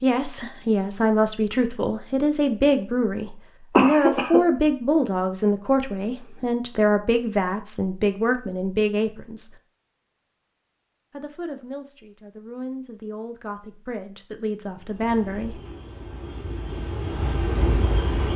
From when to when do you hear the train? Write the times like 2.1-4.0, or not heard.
14.8-18.3.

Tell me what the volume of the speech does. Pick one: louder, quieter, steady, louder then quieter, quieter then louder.
quieter.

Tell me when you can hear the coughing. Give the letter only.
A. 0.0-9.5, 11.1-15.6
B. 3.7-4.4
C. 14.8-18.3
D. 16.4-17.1
B.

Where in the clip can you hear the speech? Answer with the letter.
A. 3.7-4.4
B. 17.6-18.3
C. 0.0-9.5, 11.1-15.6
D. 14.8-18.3
C.